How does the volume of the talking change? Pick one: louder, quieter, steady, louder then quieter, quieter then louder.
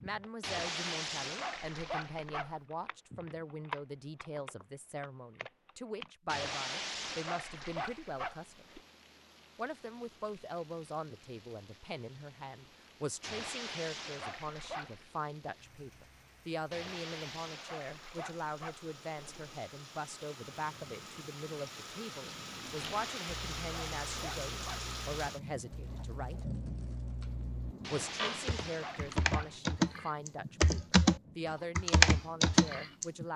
steady.